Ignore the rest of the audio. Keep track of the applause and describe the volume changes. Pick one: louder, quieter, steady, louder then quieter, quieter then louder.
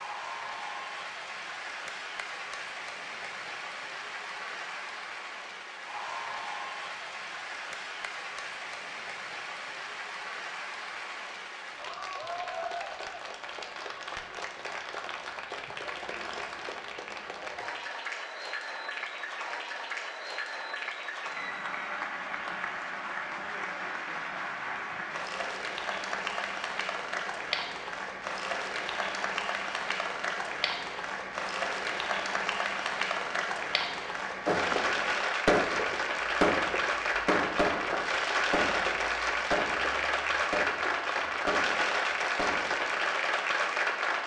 louder.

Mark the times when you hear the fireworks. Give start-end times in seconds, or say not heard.
34.5-43.0.